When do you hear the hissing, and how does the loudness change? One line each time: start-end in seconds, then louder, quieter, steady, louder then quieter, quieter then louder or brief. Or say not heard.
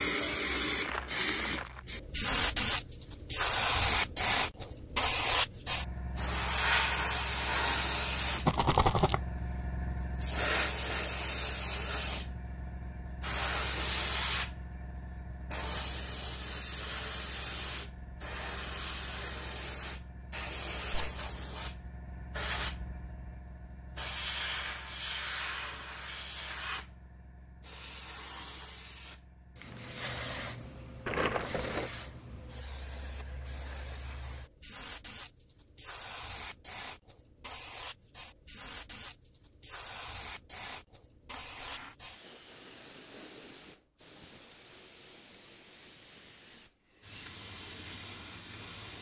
0.0-48.9 quieter.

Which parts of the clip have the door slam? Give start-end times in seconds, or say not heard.
not heard.